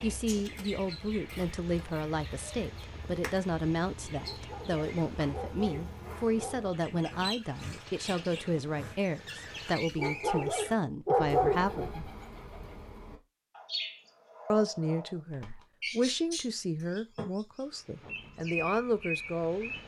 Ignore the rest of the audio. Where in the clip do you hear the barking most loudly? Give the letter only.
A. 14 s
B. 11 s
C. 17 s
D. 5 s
B.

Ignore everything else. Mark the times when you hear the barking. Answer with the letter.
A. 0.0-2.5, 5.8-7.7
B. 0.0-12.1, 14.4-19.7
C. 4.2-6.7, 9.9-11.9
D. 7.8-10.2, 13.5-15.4
C.